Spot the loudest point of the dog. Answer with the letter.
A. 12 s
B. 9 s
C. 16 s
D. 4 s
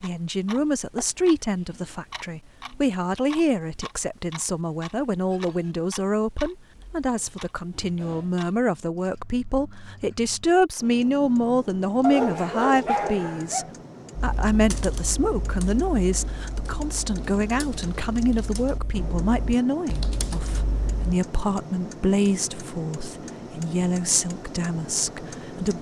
A.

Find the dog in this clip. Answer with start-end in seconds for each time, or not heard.
12.0-13.7.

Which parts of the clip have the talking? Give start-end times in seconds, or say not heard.
0.0-25.7.